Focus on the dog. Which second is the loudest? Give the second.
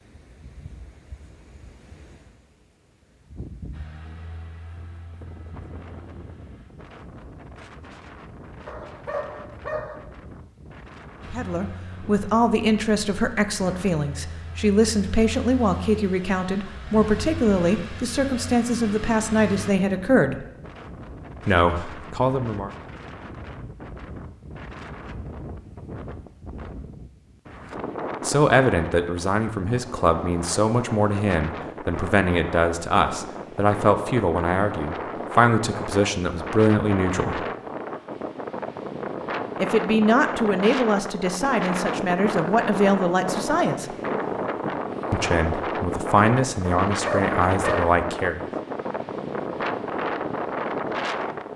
47 s.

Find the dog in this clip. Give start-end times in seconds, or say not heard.
8.7-9.9, 46.9-48.0.